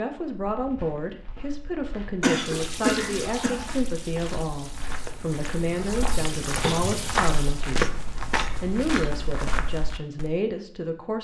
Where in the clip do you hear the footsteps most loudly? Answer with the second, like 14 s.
8 s.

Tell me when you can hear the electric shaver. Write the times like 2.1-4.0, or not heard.
not heard.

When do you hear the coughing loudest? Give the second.
3 s.